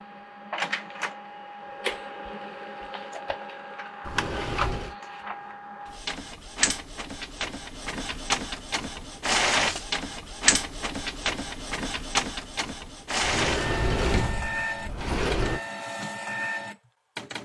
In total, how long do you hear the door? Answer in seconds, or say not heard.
3 s.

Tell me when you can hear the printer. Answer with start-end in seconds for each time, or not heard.
0.0-17.3.